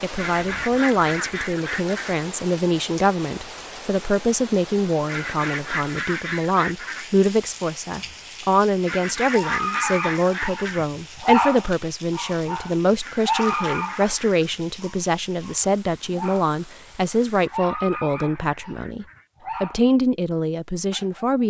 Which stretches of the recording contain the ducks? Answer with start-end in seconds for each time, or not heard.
0.1-2.1, 5.0-7.1, 8.8-10.8, 13.0-14.6, 17.3-19.3.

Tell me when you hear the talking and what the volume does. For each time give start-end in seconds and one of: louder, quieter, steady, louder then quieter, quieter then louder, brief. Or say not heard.
0.0-21.4 steady.